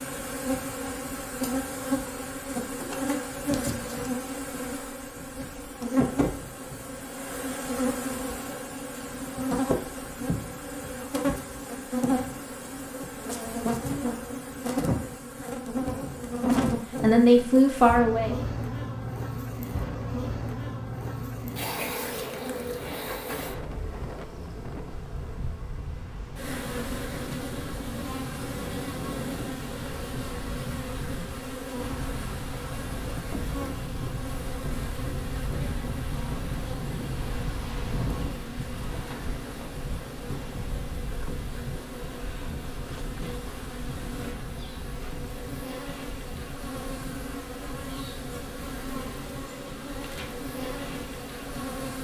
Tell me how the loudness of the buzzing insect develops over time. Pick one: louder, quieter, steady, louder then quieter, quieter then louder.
quieter.